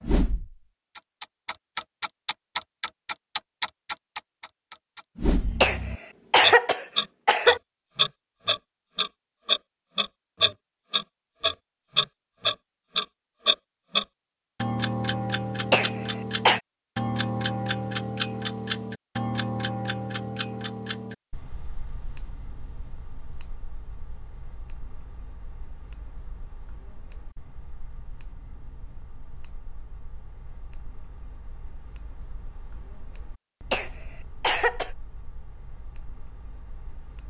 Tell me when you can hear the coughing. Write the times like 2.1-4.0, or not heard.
5.6-7.6, 15.7-16.6, 33.7-34.9.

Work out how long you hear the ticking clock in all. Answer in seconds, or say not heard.
37 s.